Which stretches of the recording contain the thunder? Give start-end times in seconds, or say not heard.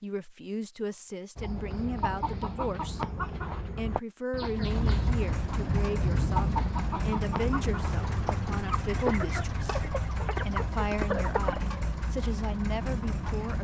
4.6-6.7.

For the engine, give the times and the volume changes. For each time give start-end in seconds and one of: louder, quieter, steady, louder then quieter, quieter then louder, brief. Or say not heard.
4.5-13.5 steady.